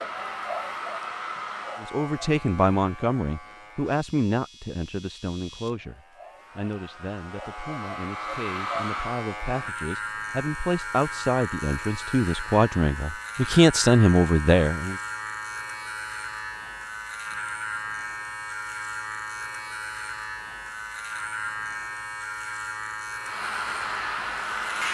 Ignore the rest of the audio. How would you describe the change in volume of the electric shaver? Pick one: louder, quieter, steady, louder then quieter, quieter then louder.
louder.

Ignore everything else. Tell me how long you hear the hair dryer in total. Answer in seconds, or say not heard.
6 s.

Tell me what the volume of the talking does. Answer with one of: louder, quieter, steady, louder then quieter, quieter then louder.
quieter then louder.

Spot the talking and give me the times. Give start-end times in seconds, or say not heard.
1.8-14.9.